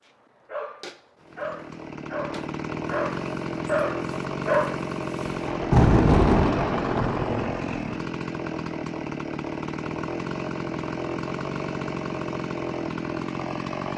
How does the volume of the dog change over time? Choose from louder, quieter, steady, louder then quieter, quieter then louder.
louder.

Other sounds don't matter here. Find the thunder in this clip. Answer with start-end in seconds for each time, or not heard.
5.3-8.0.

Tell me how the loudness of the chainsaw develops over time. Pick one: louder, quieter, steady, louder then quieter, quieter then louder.
steady.